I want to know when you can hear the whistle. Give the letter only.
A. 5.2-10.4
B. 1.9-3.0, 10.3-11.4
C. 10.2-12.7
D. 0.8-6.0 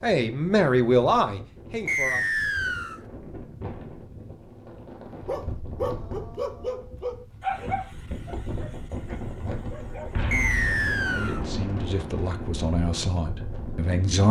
B.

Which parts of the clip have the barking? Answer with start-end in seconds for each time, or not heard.
5.2-10.4.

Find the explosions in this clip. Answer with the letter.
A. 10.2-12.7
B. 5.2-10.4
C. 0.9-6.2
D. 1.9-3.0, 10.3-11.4
A.